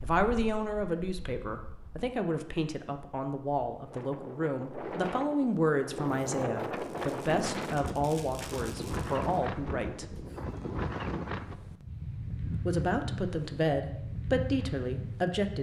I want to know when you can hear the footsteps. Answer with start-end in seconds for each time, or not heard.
not heard.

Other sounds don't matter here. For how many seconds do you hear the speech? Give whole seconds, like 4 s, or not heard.
13 s.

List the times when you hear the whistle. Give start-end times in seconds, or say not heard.
not heard.